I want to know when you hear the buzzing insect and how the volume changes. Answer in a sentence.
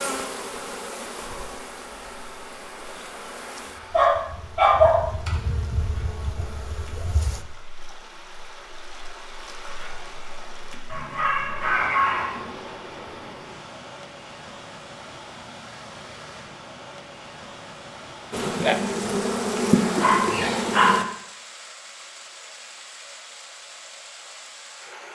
You can hear the buzzing insect from 0.0 to 7.5 s, getting quieter then louder; and briefly from 18.3 to 21.1 s.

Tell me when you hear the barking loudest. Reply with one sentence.
The volume of the barking peaks at 5 seconds.